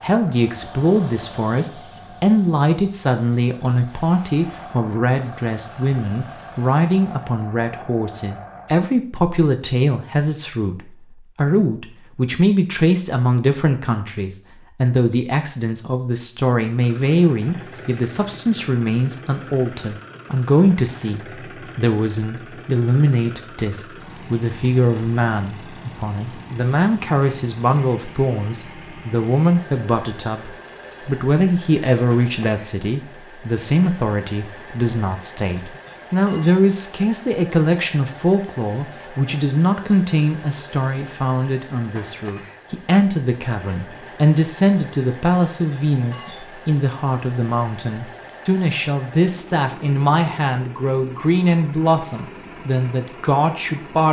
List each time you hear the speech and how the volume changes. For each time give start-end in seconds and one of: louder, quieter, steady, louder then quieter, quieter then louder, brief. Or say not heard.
0.0-54.0 steady.